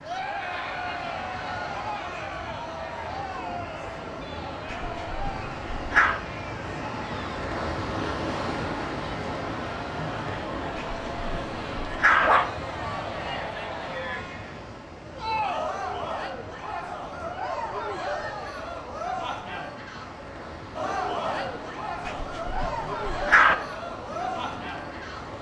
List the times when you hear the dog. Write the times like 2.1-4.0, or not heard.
4.7-6.2, 10.8-12.5, 22.1-23.6.